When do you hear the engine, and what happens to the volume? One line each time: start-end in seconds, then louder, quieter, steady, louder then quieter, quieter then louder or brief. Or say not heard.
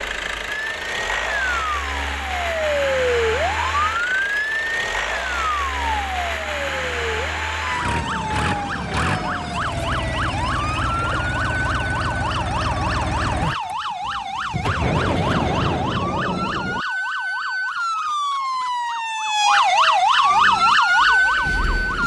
0.0-16.0 steady
20.2-22.0 brief.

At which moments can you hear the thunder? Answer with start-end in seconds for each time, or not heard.
14.8-16.9.